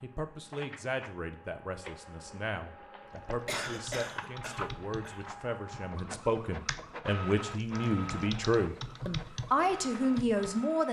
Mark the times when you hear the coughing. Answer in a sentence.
The coughing can be heard from 3.5 to 5.2 s.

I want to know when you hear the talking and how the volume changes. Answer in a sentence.
The talking can be heard from 0.0 to 10.8 s, getting louder.